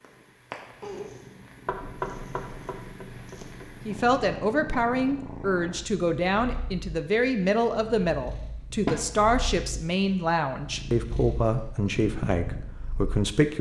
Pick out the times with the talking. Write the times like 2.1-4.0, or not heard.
3.9-13.5.